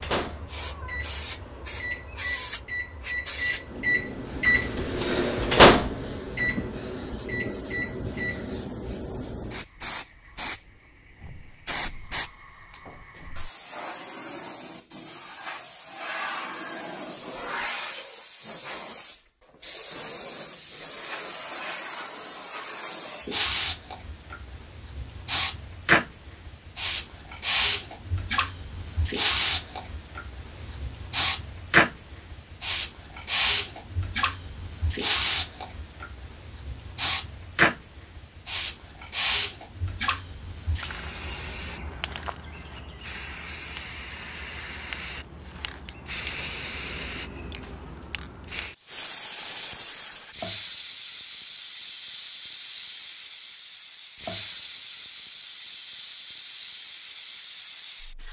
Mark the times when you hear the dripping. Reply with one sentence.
You can't hear the dripping here.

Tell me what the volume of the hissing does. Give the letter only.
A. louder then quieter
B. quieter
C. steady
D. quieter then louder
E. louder
A.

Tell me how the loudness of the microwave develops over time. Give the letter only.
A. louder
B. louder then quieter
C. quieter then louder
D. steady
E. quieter
B.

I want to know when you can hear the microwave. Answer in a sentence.
The microwave can be heard from 0.0 to 8.4 s.